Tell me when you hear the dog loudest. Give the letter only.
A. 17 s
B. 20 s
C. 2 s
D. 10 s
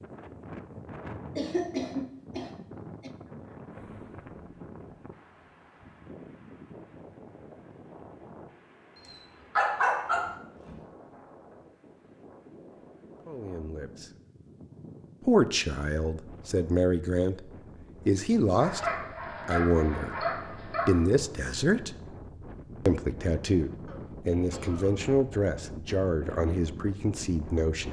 D.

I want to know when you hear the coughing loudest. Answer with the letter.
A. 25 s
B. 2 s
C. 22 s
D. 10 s
B.